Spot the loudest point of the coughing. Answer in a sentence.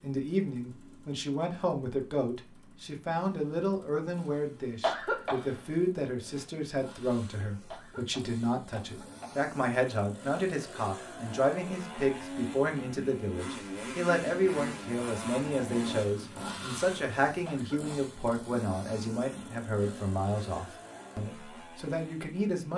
The volume of the coughing peaks at 5 seconds.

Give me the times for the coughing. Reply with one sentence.
The coughing can be heard from 4.8 to 5.5 s, from 7.7 to 9.5 s and from 17.4 to 18.1 s.